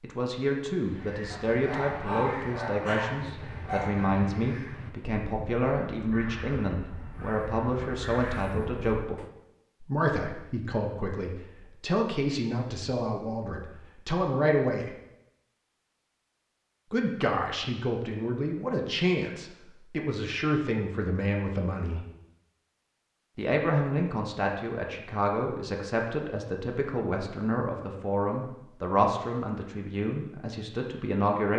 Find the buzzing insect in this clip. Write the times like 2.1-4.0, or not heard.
not heard.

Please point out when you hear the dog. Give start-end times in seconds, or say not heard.
1.3-4.0.